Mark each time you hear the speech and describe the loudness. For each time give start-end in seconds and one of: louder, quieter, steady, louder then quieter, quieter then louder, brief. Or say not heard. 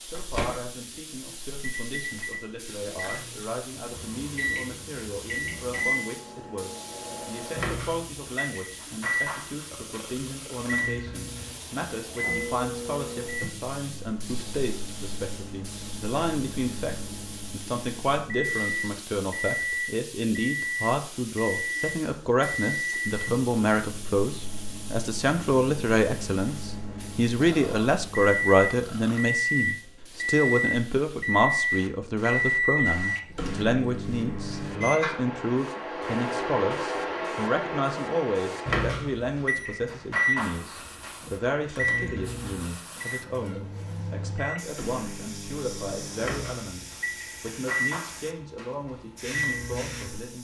0.0-50.4 louder then quieter.